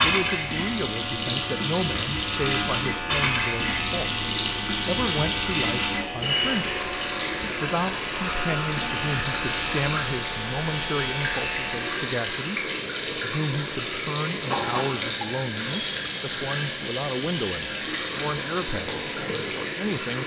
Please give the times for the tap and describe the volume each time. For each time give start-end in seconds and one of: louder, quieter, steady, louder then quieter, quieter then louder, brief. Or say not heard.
0.0-20.2 steady.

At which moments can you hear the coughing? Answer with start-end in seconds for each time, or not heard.
14.4-15.2.